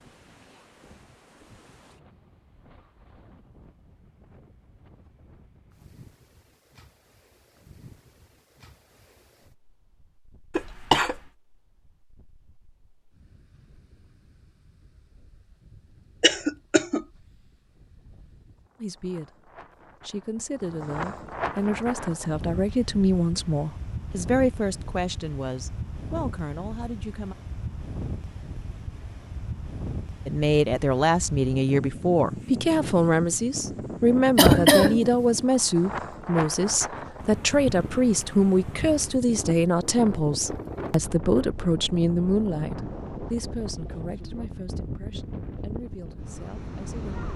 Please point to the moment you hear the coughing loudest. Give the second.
35 s.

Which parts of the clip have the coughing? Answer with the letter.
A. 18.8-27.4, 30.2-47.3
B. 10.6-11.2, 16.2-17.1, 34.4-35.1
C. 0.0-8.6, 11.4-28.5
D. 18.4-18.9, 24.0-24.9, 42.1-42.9
B.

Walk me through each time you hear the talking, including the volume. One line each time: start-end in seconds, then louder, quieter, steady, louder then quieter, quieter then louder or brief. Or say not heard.
18.8-27.4 louder then quieter
30.2-47.3 quieter.